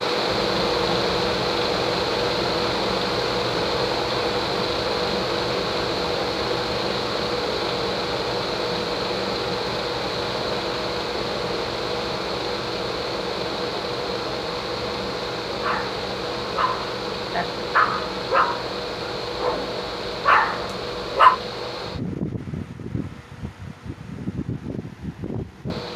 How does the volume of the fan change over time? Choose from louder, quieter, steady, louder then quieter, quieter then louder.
quieter.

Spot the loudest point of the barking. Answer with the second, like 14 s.
21 s.